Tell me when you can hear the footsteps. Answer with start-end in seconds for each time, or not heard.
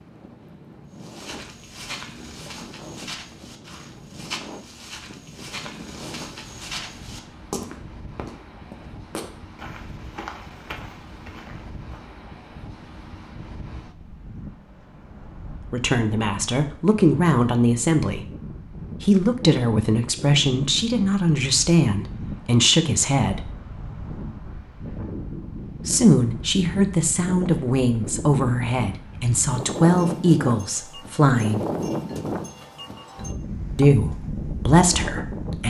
0.9-12.0.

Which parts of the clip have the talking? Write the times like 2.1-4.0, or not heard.
15.7-18.2, 19.0-23.4, 25.9-31.6, 33.8-35.6.